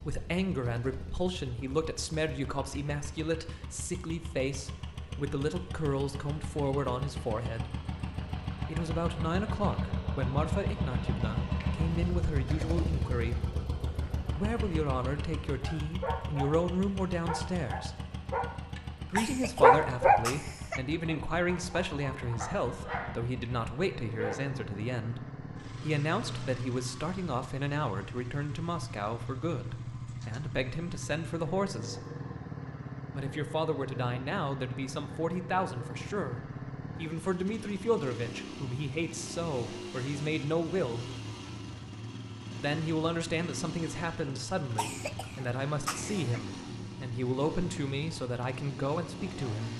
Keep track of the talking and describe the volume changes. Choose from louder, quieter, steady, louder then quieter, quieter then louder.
steady.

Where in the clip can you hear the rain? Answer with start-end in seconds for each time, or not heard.
not heard.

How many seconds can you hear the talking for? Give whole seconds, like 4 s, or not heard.
44 s.